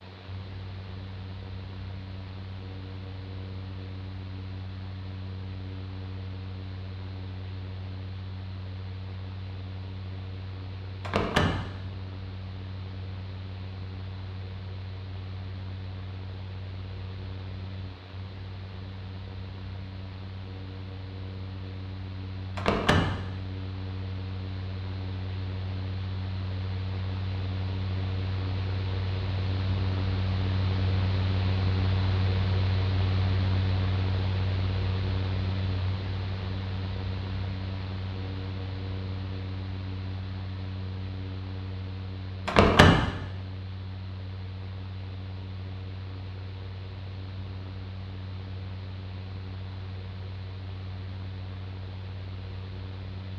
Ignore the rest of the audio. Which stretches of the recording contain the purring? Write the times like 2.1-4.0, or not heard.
not heard.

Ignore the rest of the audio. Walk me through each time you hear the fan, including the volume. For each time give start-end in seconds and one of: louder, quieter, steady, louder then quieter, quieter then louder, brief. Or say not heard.
0.0-53.3 louder then quieter.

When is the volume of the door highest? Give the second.
43 s.